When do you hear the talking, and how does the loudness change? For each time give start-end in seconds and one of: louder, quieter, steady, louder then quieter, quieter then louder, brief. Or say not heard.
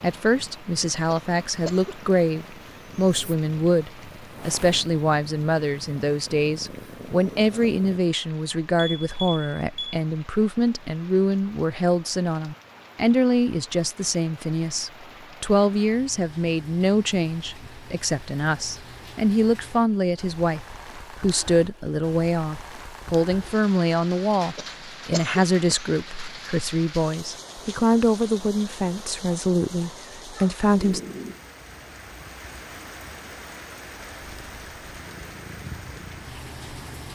0.0-31.0 steady.